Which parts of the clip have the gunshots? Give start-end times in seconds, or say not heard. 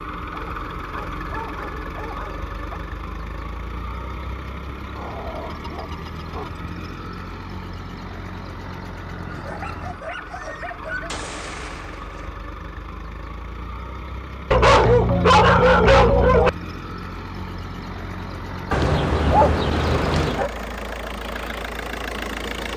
11.1-12.4.